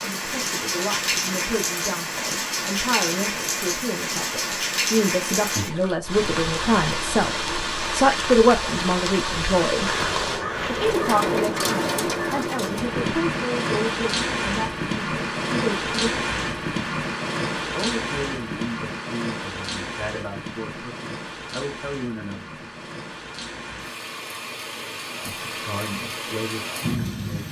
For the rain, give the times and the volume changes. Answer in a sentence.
You can hear the rain from 0.0 to 27.4 s, getting quieter.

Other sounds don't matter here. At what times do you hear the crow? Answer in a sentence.
You can hear the crow from 9.8 to 13.2 s.